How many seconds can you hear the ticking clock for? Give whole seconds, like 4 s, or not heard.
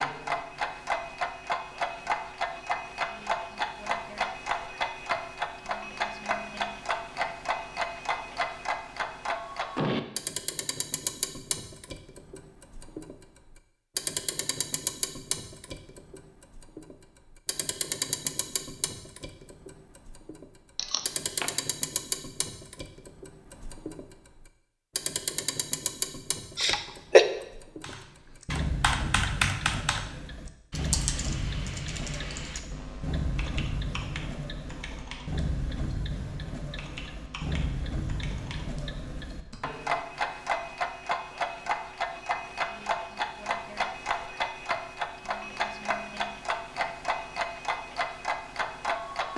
49 s.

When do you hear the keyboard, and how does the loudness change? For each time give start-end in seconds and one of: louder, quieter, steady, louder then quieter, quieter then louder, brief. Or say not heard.
27.8-39.7 quieter.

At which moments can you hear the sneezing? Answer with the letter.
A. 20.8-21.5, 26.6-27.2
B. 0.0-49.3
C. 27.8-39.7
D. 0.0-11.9
A.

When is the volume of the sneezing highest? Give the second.
27 s.